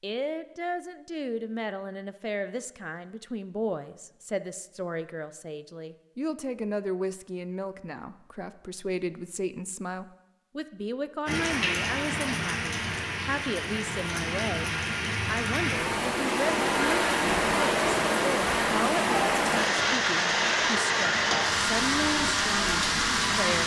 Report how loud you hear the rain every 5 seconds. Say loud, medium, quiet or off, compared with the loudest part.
off, off, medium, loud, loud.